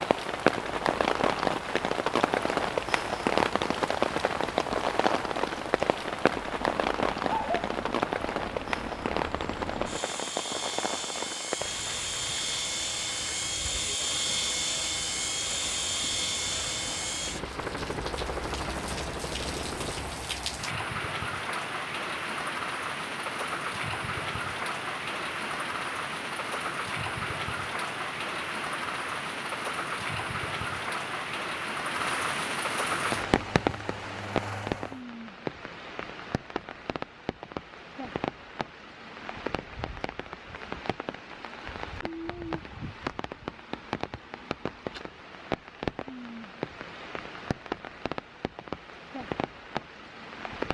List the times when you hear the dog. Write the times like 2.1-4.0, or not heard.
7.2-7.7.